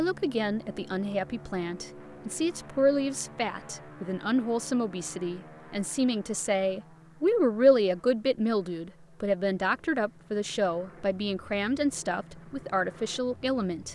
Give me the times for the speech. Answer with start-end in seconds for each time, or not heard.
0.0-13.9.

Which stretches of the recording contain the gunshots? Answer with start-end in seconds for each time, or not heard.
not heard.